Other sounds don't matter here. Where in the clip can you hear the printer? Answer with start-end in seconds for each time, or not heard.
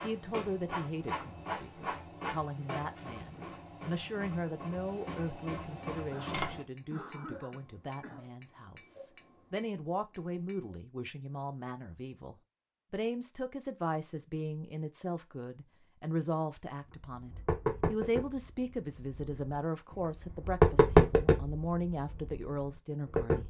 0.0-6.7.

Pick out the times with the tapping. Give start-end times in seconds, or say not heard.
5.8-10.6, 17.1-23.4.